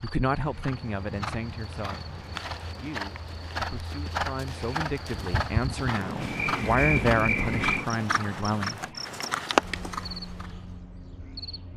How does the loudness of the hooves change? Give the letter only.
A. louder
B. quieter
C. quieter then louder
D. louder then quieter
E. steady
A.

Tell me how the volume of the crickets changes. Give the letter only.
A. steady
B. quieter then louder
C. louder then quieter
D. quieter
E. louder
C.